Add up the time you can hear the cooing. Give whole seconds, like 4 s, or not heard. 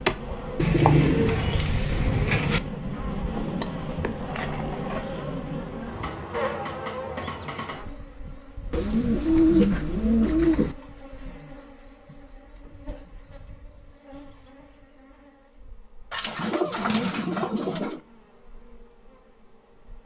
6 s.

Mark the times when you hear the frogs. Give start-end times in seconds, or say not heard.
not heard.